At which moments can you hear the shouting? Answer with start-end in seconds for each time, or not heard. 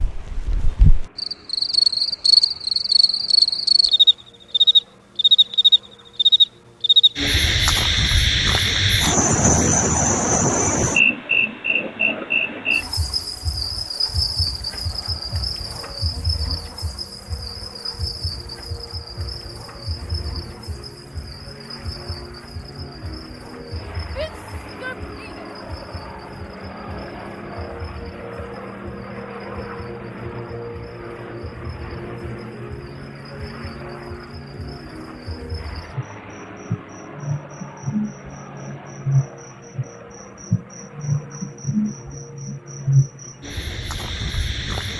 24.1-25.5.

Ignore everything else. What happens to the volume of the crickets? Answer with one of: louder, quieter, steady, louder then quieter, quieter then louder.
quieter then louder.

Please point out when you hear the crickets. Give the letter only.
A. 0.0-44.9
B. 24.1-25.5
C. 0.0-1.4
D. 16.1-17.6
A.